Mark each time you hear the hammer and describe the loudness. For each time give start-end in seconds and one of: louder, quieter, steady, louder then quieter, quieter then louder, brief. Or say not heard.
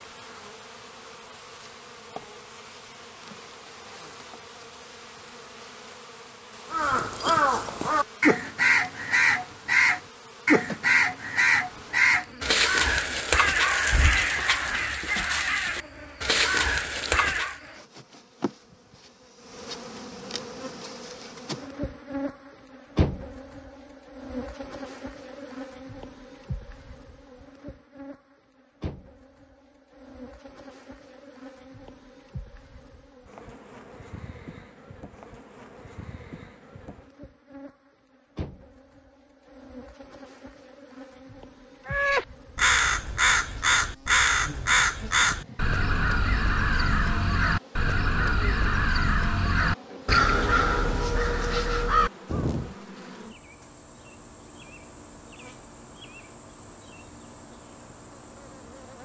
not heard.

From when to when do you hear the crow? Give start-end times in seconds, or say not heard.
6.7-17.6, 41.9-52.8.